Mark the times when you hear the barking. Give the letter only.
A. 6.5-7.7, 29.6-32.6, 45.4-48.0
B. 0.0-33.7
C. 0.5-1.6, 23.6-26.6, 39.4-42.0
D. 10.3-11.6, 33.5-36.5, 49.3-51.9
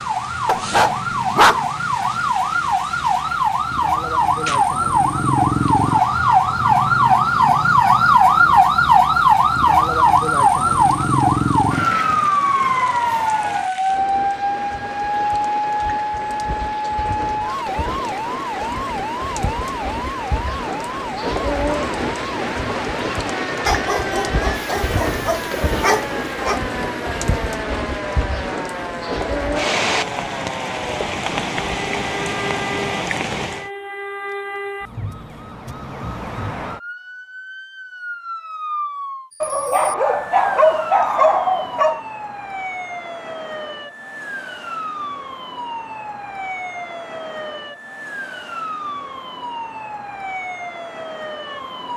C.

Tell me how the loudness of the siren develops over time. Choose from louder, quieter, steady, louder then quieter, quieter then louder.
quieter.